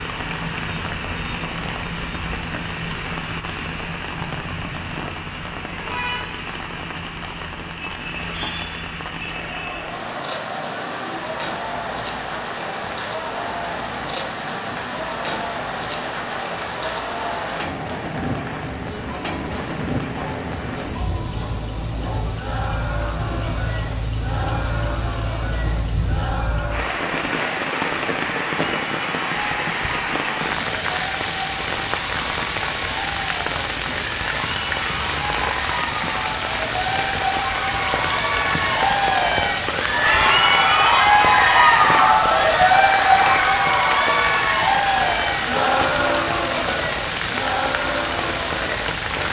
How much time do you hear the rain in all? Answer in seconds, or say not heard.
49 s.